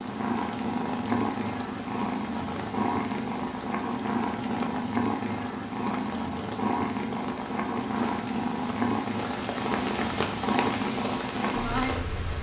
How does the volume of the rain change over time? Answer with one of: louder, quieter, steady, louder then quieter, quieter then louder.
louder.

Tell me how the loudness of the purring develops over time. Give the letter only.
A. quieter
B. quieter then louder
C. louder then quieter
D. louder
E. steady
E.